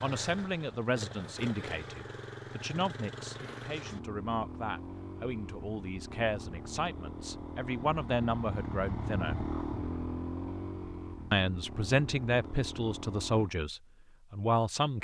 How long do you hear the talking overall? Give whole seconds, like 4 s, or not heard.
13 s.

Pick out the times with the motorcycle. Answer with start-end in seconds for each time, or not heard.
0.0-13.5.